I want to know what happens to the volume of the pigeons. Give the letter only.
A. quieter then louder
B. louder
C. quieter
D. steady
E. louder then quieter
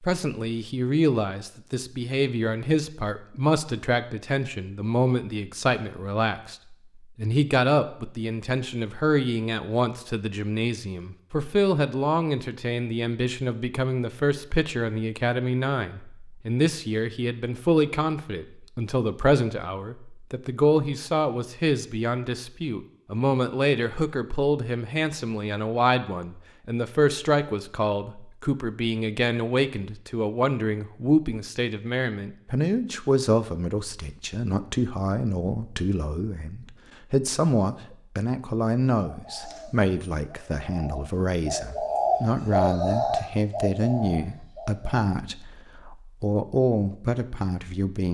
E.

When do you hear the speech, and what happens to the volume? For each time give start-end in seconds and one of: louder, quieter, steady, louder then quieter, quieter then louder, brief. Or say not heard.
0.0-48.0 steady.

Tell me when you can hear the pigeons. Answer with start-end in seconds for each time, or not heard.
39.0-45.0.